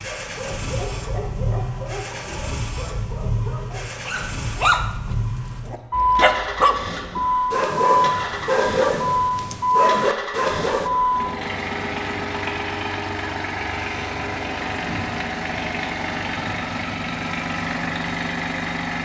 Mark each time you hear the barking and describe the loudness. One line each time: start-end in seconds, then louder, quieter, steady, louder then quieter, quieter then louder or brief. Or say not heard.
0.0-10.9 louder.